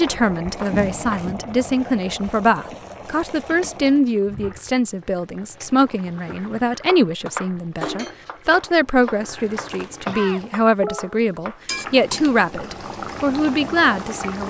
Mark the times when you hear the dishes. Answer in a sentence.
The dishes can't be heard in this clip.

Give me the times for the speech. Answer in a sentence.
You can hear the speech from 0.0 to 14.4 s.